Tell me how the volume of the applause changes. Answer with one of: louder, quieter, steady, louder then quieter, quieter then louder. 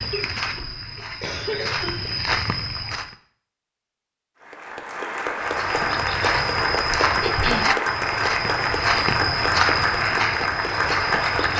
steady.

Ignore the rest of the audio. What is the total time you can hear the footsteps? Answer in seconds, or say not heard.
9 s.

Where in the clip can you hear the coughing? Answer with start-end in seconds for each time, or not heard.
0.1-2.1, 7.2-7.8.